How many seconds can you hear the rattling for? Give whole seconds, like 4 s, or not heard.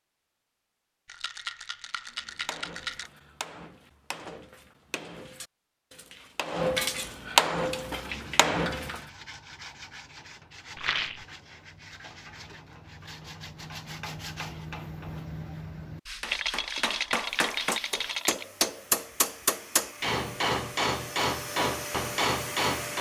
5 s.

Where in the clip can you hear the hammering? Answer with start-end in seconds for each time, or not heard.
2.2-9.0, 16.2-22.9.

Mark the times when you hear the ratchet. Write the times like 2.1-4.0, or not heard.
not heard.